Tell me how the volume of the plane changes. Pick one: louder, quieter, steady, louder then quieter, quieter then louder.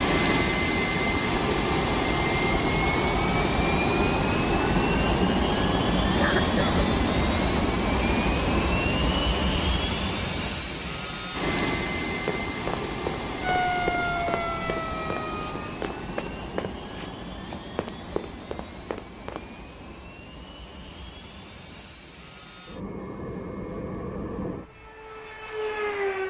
quieter.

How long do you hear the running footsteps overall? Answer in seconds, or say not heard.
7 s.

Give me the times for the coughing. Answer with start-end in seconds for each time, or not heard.
6.2-6.8.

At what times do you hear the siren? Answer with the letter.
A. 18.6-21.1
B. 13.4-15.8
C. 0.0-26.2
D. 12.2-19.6
B.